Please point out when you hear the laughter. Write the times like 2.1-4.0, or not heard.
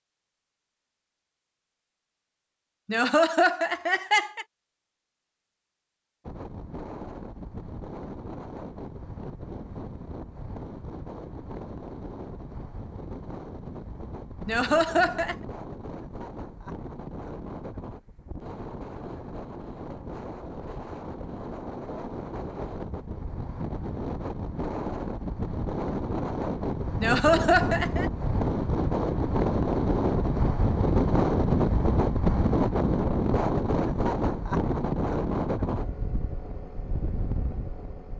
2.9-4.5, 14.4-15.3, 27.0-28.1.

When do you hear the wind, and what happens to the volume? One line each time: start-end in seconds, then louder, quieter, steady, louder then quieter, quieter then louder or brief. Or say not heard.
6.2-38.1 louder.